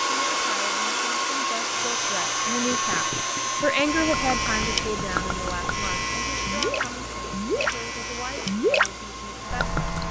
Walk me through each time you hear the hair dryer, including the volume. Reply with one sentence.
You can hear the hair dryer from 0.0 to 10.0 s, getting quieter.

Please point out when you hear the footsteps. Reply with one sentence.
You can't hear the footsteps here.